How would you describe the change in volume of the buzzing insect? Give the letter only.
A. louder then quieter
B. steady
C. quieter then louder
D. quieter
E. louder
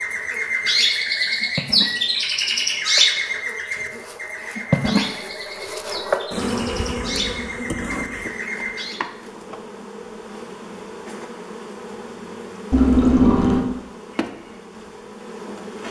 A.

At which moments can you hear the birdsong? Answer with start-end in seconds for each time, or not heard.
0.0-9.0.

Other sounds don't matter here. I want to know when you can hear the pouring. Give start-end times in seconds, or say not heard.
12.7-13.7.